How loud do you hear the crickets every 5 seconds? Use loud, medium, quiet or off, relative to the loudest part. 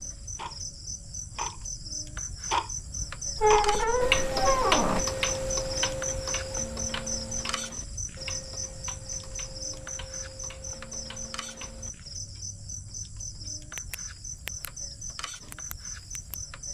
loud, loud, medium, medium.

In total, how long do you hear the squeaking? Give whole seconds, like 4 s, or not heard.
2 s.